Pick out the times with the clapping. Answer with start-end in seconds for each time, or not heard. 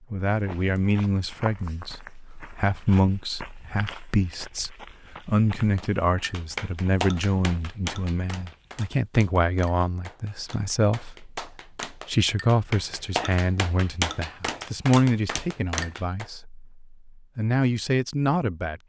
5.8-16.2.